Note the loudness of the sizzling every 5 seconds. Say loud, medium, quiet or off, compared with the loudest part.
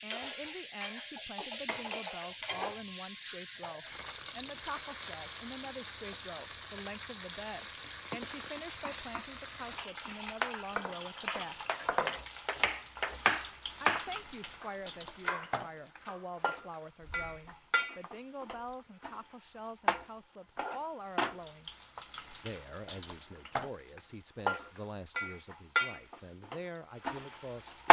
medium, medium, medium, medium, medium, loud.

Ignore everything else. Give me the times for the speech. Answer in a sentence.
The speech can be heard from 0.0 to 11.6 s, from 13.8 to 21.7 s and from 22.4 to 27.8 s.